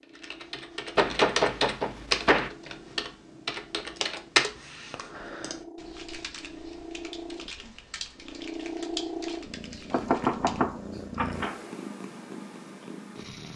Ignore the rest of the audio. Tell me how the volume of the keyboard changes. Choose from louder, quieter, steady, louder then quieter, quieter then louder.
quieter.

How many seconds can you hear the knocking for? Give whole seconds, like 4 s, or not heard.
3 s.